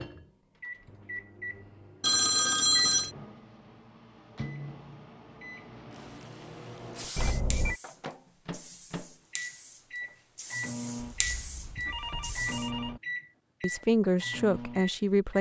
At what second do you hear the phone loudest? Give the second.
3 s.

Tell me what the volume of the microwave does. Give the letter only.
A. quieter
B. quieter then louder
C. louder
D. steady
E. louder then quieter
C.